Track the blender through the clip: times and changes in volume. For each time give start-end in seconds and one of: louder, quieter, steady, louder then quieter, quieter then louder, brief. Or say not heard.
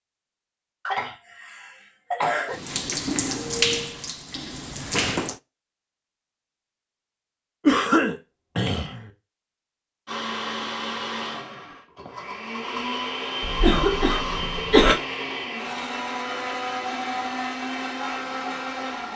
10.1-19.1 steady.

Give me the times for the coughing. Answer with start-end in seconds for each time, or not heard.
0.8-2.5, 7.7-9.1, 13.4-15.0.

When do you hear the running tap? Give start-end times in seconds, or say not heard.
2.5-5.4.